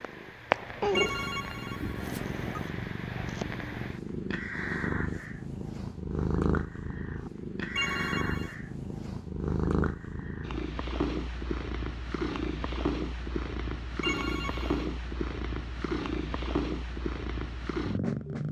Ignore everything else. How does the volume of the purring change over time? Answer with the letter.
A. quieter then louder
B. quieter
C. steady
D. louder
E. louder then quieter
C.